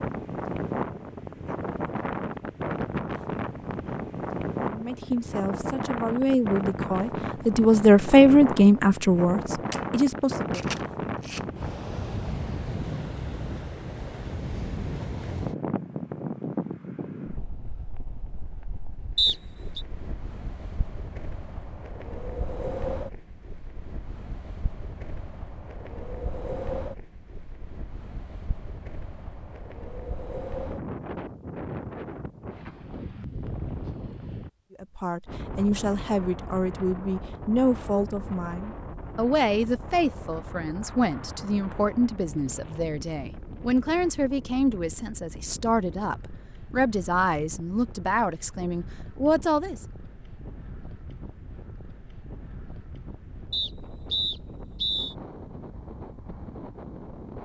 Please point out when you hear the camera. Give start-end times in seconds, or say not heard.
9.7-11.4.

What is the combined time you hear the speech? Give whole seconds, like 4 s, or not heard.
21 s.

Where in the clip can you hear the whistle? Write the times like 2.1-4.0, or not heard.
19.1-19.8, 53.5-55.1.